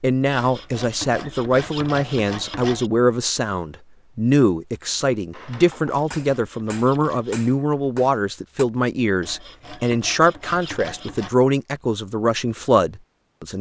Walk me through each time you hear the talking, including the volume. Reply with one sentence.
You can hear the talking from 0.0 to 13.5 s, at a steady volume.